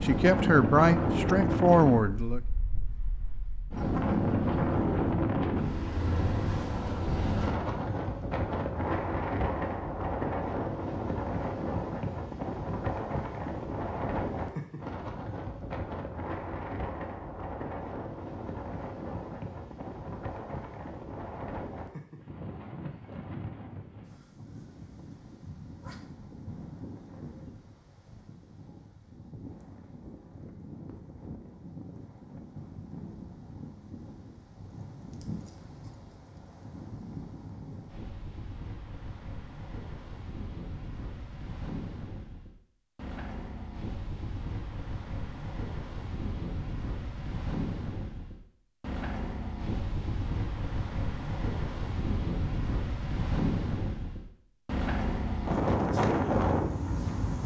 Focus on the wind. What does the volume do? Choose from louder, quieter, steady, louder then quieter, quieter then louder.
quieter then louder.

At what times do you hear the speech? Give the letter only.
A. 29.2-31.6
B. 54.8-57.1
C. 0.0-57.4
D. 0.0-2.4
D.